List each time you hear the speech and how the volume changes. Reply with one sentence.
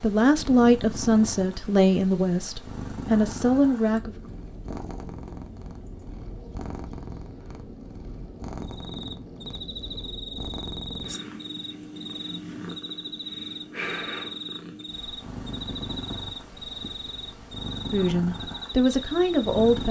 You can hear the speech from 0.0 to 4.2 s, getting quieter then louder; and briefly from 17.9 to 19.8 s.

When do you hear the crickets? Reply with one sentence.
The crickets can be heard from 8.6 to 19.7 s.